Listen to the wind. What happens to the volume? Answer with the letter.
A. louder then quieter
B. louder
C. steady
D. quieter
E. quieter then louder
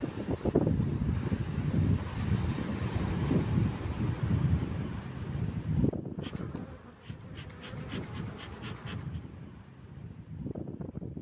D.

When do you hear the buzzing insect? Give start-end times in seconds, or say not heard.
6.1-9.2.